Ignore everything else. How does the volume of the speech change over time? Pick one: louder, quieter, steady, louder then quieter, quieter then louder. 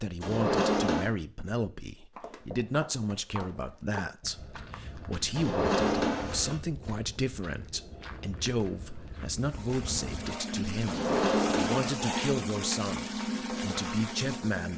steady.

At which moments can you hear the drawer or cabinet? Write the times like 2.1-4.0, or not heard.
0.2-1.1, 5.3-6.6, 10.8-11.9.